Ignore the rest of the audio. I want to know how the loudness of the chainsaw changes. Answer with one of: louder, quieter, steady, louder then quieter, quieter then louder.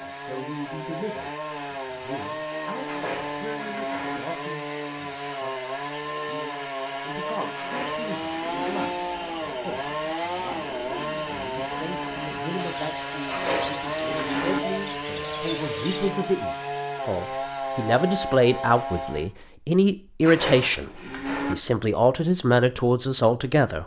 steady.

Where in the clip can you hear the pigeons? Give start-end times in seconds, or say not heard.
8.4-16.1.